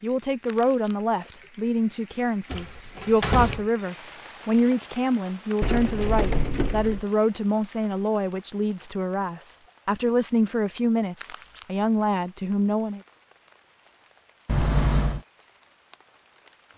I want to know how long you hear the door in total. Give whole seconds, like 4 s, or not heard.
3 s.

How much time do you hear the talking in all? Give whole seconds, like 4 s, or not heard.
13 s.